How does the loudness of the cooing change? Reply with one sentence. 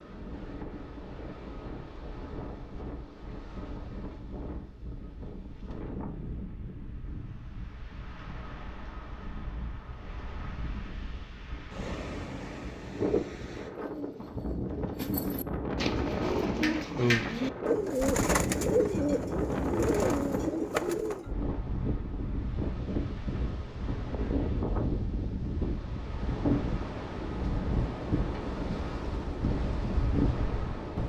The volume of the cooing goes up.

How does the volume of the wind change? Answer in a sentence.
The volume of the wind goes up.